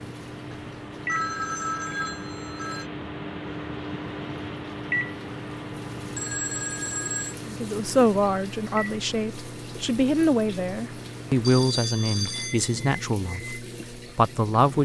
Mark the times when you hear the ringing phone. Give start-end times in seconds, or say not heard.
0.5-2.9, 6.2-7.3, 11.4-12.8.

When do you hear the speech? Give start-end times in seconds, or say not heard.
7.5-14.7.